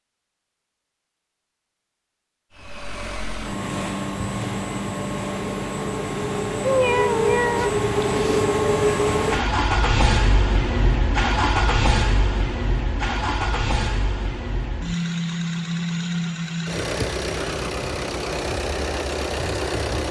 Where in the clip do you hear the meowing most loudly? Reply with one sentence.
The loudest moment of the meowing is at 7 seconds.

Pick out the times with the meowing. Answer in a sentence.
The meowing can be heard from 6.6 to 8.4 s.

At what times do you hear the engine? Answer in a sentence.
You can hear the engine from 2.5 to 20.0 s.